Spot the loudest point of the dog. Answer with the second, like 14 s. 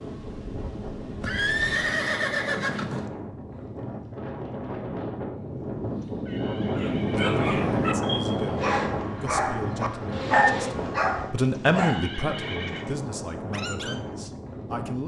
10 s.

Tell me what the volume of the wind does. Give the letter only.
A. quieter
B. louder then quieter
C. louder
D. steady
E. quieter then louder
B.